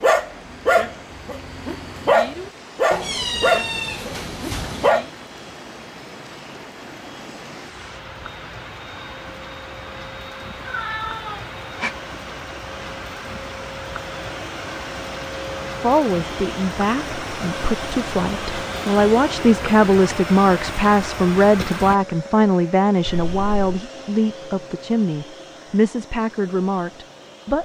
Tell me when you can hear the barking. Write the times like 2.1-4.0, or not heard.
0.0-5.1.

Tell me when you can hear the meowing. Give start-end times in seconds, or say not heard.
2.9-4.9, 10.6-11.9, 23.1-23.7.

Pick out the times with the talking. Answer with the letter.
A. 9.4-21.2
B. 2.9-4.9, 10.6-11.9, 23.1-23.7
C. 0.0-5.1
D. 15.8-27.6
D.